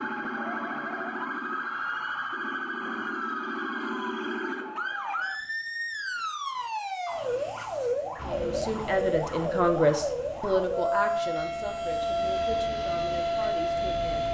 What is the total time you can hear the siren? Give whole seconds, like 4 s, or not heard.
14 s.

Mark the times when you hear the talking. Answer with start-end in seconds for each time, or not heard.
8.2-14.2.